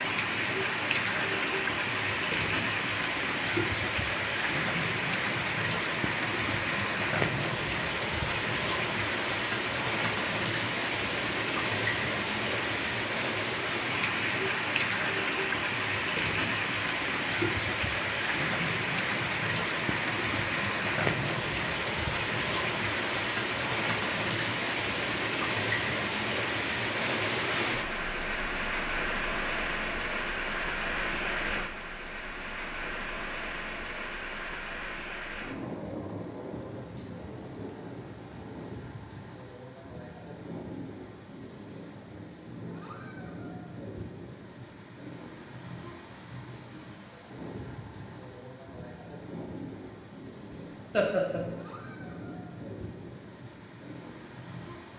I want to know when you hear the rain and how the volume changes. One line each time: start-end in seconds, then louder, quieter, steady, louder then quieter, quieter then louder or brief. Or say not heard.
0.0-54.9 quieter.